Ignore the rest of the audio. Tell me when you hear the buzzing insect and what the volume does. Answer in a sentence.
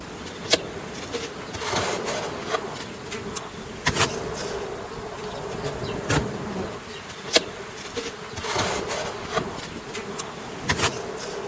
The buzzing insect can be heard from 0.0 to 11.4 s, at a steady volume.